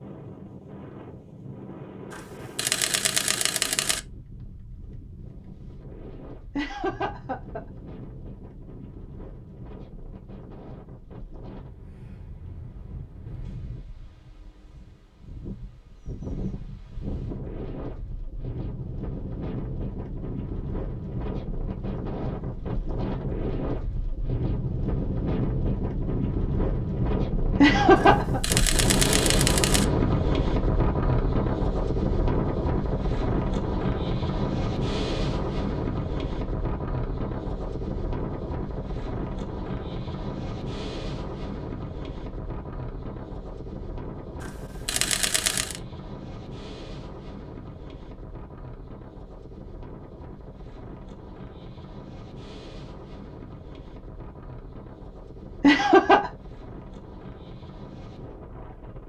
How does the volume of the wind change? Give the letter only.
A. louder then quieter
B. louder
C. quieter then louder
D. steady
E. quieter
A.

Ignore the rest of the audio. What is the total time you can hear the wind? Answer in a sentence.
The wind can be heard for 59 seconds in total.